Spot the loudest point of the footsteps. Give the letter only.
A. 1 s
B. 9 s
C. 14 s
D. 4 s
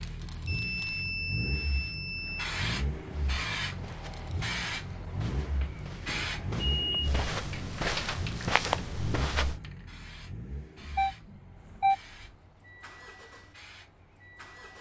B.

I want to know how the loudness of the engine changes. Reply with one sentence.
The loudness of the engine goes down.